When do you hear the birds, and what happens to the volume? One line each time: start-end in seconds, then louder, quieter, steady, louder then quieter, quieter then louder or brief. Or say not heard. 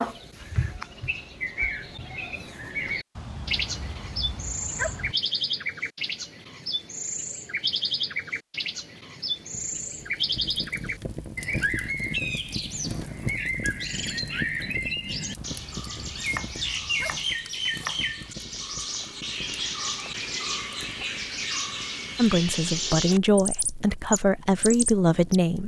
0.0-25.4 steady.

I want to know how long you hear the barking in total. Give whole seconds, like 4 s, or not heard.
4 s.